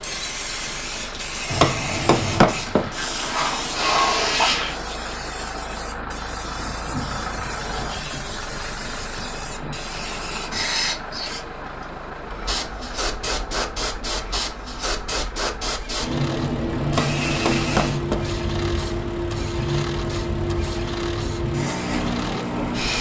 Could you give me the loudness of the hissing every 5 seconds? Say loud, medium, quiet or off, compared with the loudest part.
loud, medium, loud, loud, loud.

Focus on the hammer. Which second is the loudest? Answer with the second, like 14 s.
2 s.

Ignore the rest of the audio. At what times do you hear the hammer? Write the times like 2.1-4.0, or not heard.
1.5-2.9, 16.9-18.2.